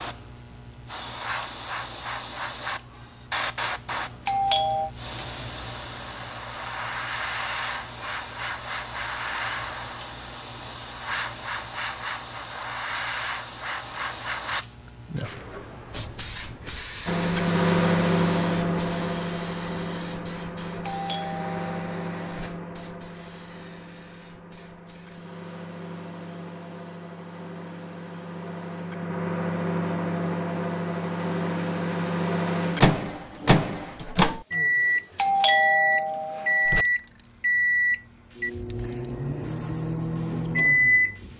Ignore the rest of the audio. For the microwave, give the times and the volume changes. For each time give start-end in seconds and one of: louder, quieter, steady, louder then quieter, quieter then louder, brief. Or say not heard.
17.1-41.3 quieter then louder.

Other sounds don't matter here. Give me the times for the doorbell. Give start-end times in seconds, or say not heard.
4.2-4.9, 20.9-22.5, 35.1-36.9.